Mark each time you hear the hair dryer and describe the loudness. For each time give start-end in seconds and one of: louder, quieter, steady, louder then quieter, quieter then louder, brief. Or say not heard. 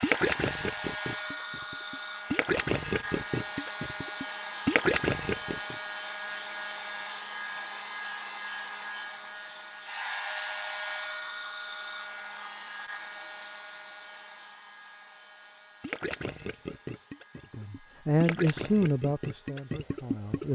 0.0-20.5 quieter.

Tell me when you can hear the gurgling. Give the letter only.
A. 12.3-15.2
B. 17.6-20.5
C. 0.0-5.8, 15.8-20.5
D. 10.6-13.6
C.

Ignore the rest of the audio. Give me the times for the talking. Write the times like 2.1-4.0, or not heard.
17.6-20.5.